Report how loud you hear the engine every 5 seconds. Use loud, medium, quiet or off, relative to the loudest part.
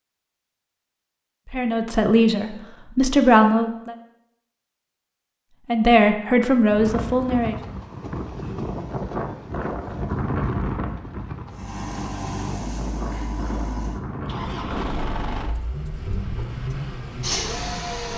off, off, loud, loud.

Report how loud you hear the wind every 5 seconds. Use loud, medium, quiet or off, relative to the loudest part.
off, loud, loud, medium.